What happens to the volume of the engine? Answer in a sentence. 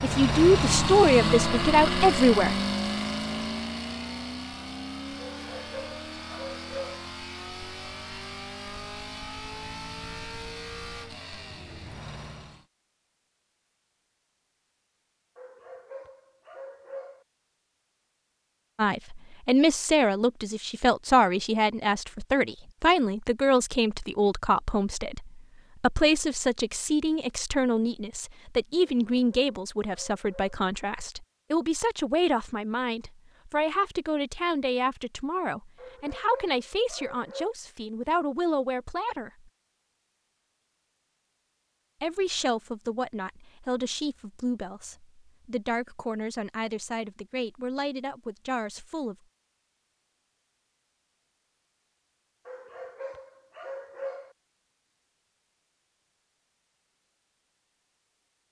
The loudness of the engine goes down.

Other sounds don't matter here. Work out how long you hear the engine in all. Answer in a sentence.
The engine can be heard for 13 seconds in total.